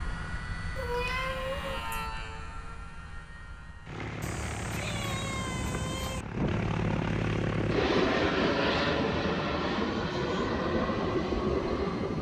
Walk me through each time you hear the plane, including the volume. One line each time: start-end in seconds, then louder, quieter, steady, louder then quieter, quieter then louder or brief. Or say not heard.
0.0-12.1 louder.